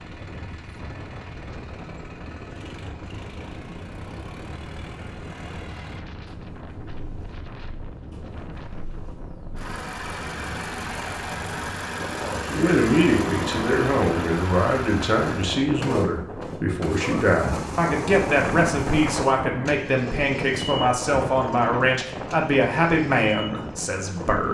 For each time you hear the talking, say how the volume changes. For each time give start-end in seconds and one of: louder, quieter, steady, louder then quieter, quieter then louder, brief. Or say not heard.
12.5-24.5 steady.